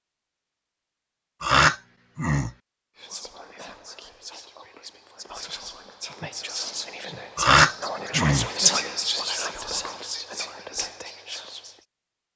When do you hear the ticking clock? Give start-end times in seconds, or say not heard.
not heard.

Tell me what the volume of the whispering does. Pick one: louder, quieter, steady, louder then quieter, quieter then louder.
louder then quieter.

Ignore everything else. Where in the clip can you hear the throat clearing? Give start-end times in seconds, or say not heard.
1.4-2.5, 7.3-8.5.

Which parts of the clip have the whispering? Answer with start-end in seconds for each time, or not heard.
3.0-11.8.